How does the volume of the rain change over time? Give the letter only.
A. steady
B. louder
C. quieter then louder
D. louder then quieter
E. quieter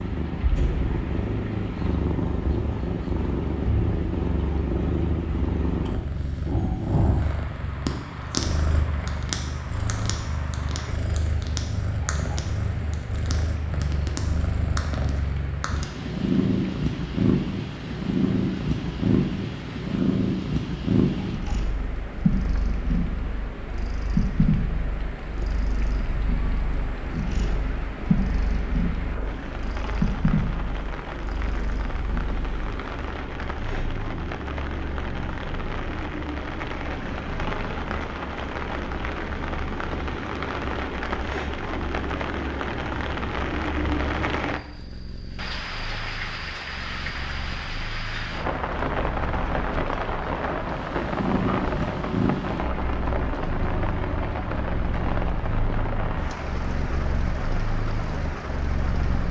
B.